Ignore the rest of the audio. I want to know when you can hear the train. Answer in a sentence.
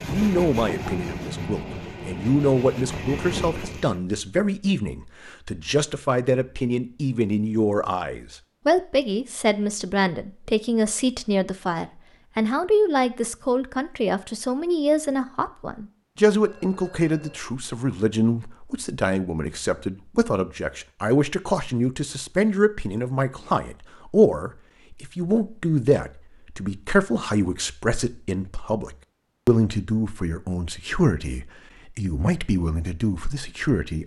The train can be heard from 0.0 to 4.0 s.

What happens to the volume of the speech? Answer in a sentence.
The loudness of the speech stays about the same.